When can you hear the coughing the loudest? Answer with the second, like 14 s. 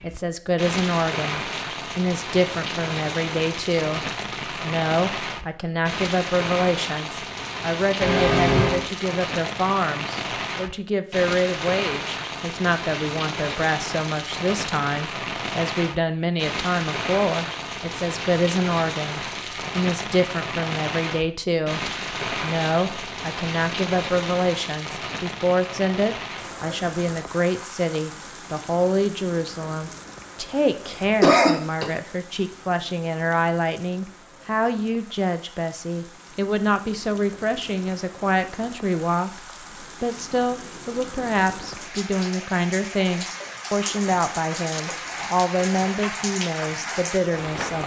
31 s.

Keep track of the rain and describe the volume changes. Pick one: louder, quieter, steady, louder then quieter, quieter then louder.
quieter then louder.